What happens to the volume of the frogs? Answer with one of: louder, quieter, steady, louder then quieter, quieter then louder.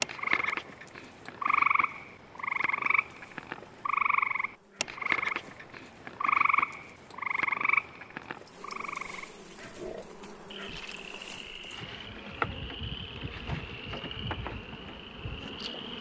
quieter.